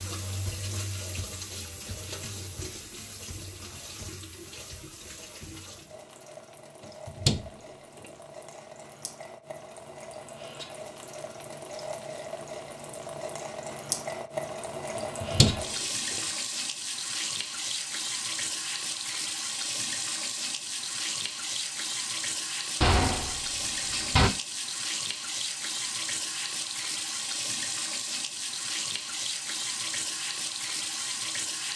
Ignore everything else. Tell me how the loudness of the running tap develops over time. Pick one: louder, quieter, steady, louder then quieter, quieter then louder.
louder.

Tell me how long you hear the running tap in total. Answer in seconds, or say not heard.
32 s.